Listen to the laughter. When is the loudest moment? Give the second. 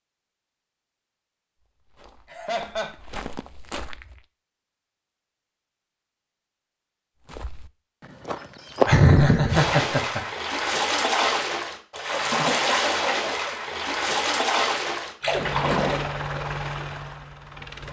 9 s.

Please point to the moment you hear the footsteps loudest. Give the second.
9 s.